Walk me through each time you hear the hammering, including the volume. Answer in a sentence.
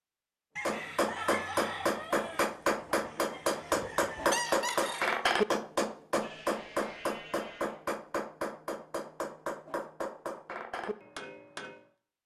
You can hear the hammering from 0.7 to 11.8 s, getting quieter.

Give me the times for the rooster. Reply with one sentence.
You can hear the rooster from 0.6 to 5.3 s.